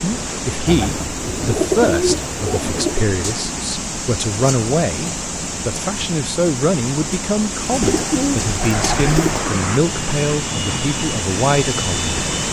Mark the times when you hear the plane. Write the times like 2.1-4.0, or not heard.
8.6-12.4.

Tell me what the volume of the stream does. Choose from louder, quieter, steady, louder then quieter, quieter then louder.
steady.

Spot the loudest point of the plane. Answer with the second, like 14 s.
9 s.